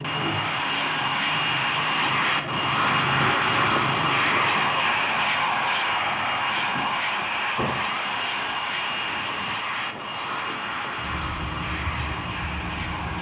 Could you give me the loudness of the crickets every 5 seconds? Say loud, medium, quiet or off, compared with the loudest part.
loud, medium, medium.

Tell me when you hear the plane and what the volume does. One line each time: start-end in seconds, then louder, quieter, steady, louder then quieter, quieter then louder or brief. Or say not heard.
0.0-13.1 quieter.